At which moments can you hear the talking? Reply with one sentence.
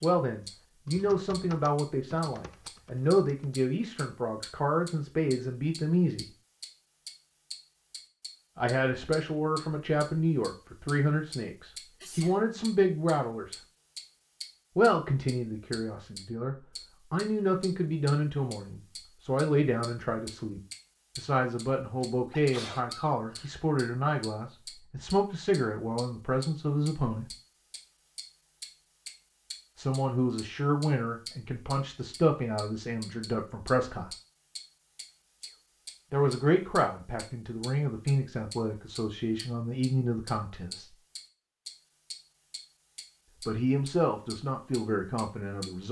The talking can be heard from 0.0 to 6.2 s, from 8.6 to 13.6 s, from 14.8 to 27.3 s, from 29.8 to 34.1 s, from 36.1 to 41.0 s and from 43.5 to 45.8 s.